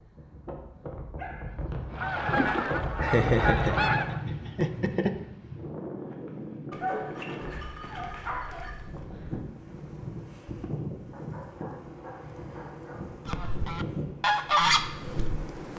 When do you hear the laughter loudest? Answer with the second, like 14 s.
3 s.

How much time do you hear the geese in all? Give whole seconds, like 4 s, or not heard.
5 s.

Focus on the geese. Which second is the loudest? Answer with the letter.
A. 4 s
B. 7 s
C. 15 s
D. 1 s
C.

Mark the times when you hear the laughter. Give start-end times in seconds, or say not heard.
3.0-5.2.